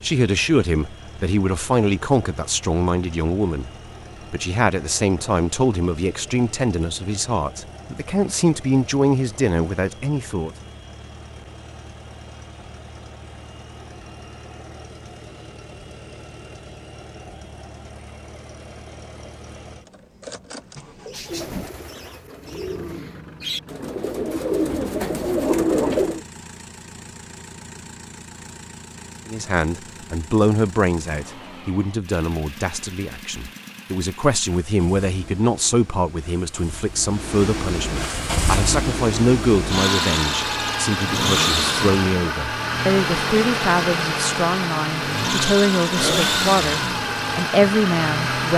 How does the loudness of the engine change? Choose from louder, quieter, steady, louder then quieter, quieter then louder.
louder.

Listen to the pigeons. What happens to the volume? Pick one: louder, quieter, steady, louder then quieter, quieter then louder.
louder.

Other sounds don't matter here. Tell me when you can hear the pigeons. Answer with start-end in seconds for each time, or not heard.
20.9-26.2.